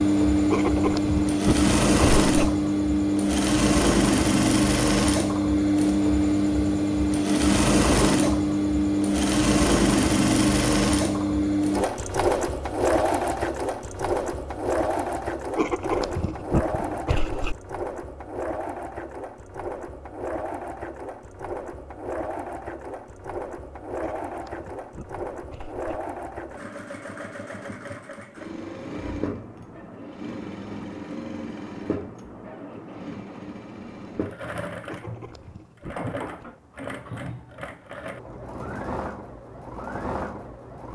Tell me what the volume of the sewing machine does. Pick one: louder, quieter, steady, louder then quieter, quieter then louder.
quieter.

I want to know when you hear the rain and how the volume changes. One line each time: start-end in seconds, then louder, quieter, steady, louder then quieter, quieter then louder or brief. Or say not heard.
not heard.